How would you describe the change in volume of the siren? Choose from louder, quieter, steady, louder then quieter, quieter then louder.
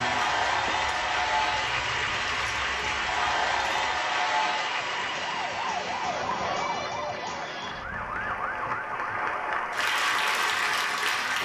louder then quieter.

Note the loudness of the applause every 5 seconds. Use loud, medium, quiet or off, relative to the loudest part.
loud, medium, loud.